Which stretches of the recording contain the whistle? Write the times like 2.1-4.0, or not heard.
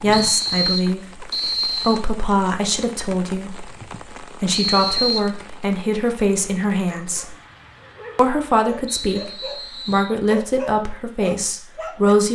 0.1-2.0, 4.5-5.3, 8.8-10.2.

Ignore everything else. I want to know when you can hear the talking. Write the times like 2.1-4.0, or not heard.
0.0-7.3, 8.2-12.2.